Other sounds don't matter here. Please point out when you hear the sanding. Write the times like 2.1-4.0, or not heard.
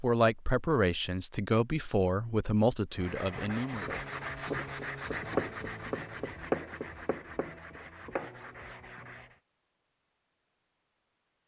2.9-9.4.